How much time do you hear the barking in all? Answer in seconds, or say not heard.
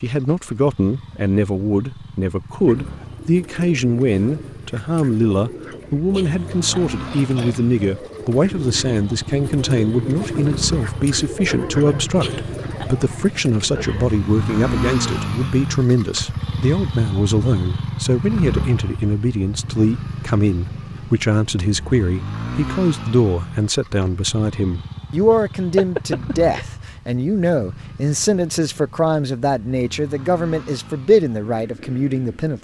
not heard.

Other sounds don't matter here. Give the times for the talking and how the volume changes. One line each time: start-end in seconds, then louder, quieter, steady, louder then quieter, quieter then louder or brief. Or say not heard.
0.0-32.5 steady.